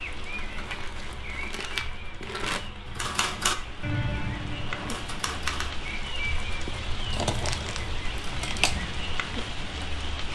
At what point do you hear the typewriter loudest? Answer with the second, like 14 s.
3 s.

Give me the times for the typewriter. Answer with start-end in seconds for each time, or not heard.
3.0-5.8.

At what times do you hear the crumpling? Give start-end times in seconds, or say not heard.
0.3-2.7, 7.1-8.8.